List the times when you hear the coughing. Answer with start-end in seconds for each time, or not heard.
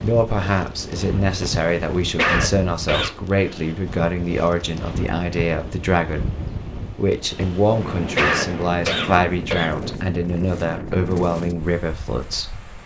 1.4-3.1, 7.4-9.7.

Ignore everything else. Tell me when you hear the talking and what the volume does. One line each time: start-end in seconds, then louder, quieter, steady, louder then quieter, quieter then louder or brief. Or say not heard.
0.0-12.6 steady.